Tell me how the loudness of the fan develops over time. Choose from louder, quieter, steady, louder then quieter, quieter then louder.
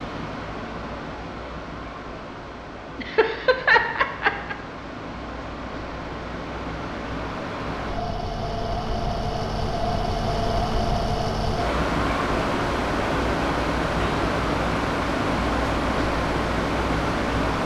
louder.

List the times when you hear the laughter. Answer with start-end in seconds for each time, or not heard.
3.0-4.5.